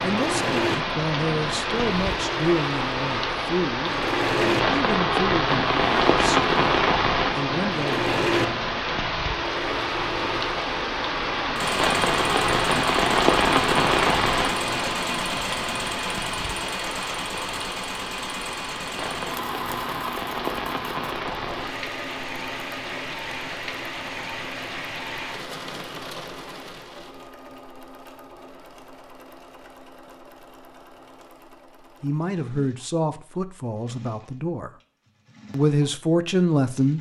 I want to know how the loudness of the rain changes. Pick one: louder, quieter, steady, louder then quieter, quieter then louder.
quieter.